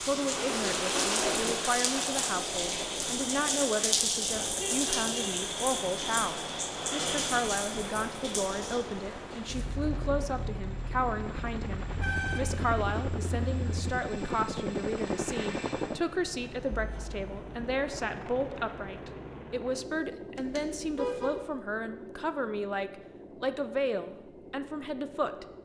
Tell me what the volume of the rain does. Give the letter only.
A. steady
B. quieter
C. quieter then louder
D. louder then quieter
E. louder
B.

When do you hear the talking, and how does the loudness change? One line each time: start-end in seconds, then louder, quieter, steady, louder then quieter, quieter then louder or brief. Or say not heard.
0.0-25.4 steady.